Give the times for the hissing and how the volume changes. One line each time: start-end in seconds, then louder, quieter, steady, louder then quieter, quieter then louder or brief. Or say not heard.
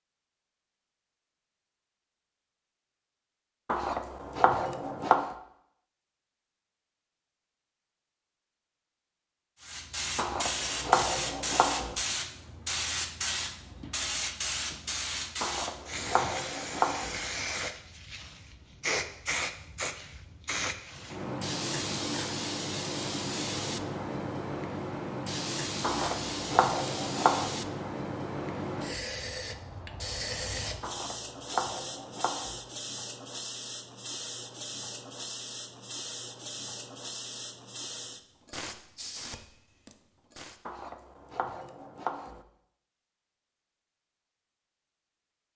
9.6-40.6 quieter.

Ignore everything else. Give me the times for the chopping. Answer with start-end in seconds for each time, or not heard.
3.6-5.3, 10.2-11.9, 15.4-17.2, 25.8-27.5, 30.8-32.6, 40.6-42.5.